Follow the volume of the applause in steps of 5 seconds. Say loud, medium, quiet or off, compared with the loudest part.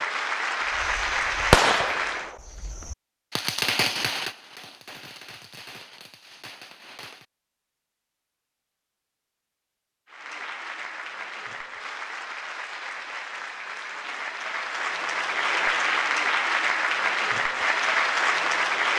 loud, off, medium, loud.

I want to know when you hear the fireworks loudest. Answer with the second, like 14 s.
2 s.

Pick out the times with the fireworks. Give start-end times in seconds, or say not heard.
0.7-7.2.